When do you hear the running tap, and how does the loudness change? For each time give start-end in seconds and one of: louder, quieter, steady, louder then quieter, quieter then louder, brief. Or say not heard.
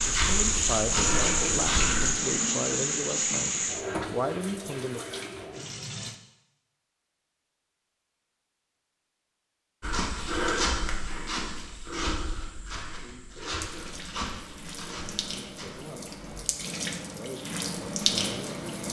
0.0-6.2 quieter
13.6-18.8 louder.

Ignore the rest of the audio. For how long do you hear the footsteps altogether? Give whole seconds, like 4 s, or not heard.
8 s.